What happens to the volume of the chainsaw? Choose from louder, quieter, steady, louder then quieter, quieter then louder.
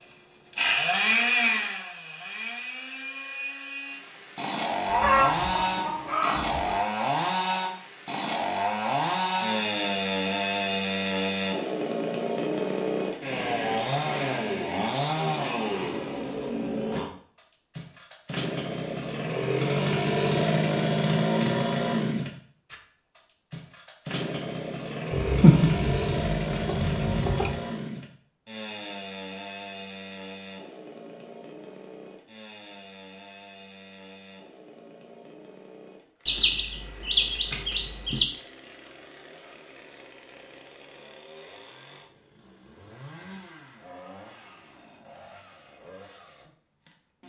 quieter.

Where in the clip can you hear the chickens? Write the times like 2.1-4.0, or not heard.
4.8-6.8, 25.1-27.6, 36.2-38.2.